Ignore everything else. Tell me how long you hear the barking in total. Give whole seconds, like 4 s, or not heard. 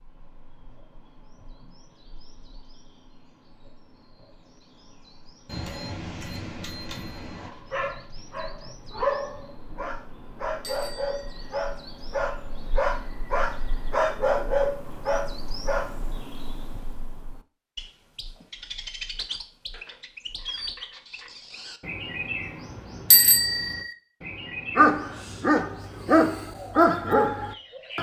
12 s.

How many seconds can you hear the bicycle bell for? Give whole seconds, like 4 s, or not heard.
4 s.